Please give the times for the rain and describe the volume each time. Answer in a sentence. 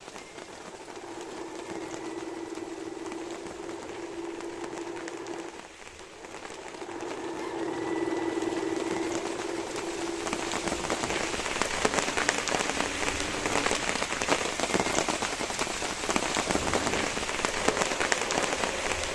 The rain can be heard from 0.0 to 19.1 s, getting louder.